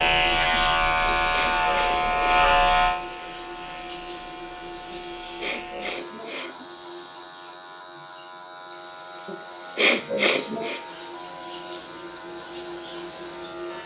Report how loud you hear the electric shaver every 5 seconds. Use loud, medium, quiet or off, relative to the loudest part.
loud, quiet, quiet.